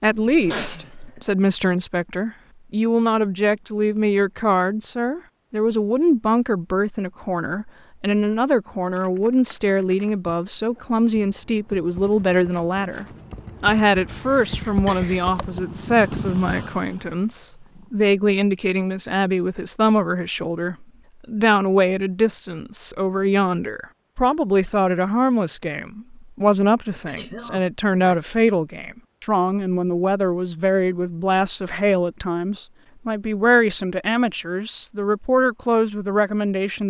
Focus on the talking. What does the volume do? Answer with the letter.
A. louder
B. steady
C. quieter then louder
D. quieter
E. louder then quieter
B.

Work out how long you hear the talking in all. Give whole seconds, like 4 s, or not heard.
37 s.